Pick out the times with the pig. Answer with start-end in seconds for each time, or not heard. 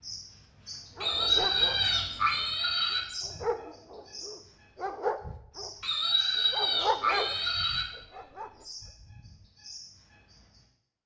1.0-3.0, 5.8-7.8.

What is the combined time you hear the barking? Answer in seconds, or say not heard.
8 s.